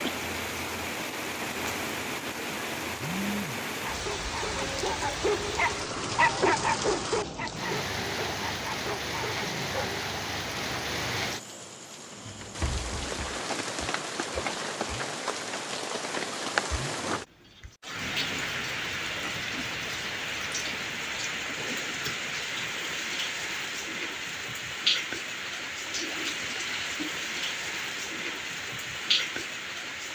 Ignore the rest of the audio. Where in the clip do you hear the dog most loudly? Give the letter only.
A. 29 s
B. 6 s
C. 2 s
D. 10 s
B.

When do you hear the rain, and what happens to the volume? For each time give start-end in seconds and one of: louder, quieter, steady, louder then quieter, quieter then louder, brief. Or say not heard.
0.0-30.0 steady.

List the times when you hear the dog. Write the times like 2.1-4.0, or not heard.
3.9-10.0.